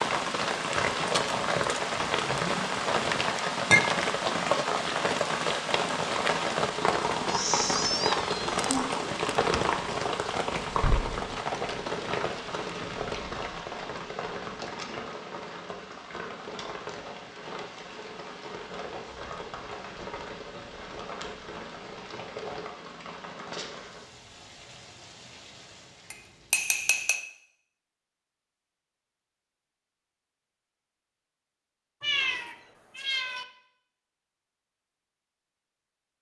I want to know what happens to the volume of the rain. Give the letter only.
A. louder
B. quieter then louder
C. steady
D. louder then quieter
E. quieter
E.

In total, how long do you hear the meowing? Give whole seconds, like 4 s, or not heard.
3 s.